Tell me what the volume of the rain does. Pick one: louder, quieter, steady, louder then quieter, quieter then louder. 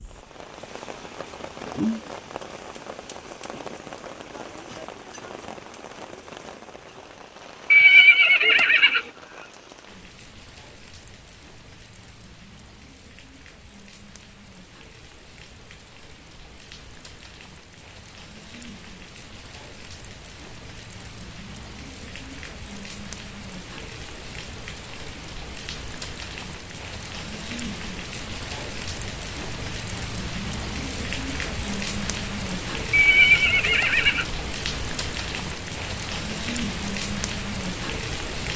quieter then louder.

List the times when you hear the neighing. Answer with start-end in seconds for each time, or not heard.
7.7-9.0, 32.9-34.2.